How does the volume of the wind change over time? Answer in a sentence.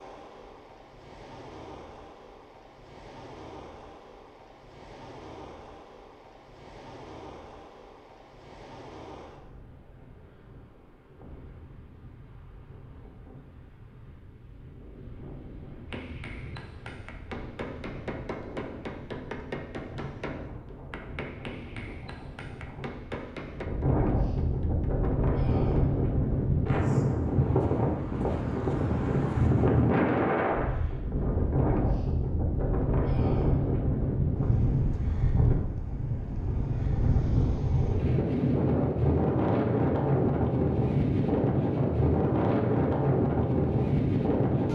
The volume of the wind goes up.